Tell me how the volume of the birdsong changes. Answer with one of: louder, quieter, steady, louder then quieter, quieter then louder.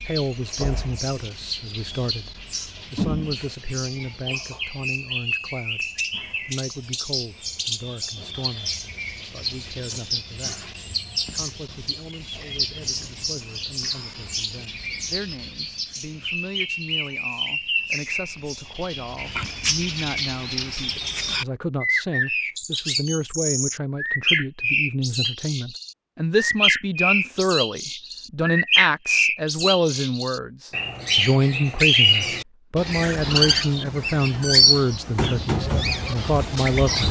louder.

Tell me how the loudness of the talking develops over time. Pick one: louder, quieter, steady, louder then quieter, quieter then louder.
quieter then louder.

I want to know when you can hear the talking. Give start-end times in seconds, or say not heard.
0.1-10.6, 11.3-37.0.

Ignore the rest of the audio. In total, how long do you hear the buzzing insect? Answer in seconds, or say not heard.
not heard.